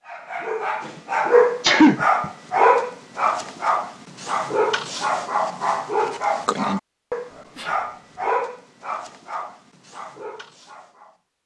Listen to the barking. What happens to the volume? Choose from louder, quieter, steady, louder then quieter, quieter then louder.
quieter.